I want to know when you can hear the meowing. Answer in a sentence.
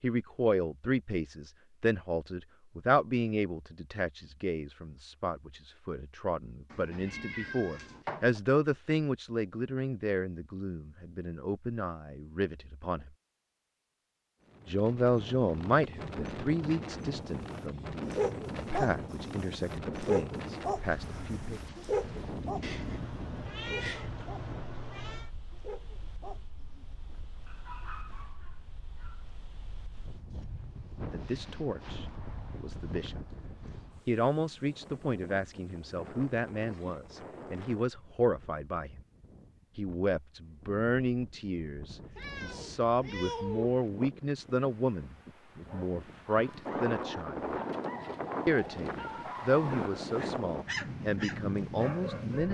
The meowing can be heard from 6.7 to 8.4 s, from 22.6 to 25.3 s and from 42.1 to 43.8 s.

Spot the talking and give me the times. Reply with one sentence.
The talking can be heard from 0.0 to 13.1 s, from 14.7 to 21.6 s, from 31.1 to 33.2 s, from 34.0 to 39.0 s, from 39.8 to 47.5 s and from 48.5 to 52.4 s.